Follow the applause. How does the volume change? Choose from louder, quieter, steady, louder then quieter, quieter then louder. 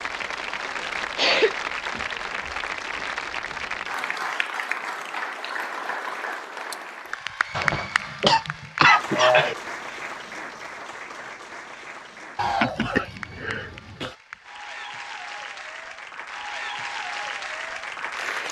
quieter then louder.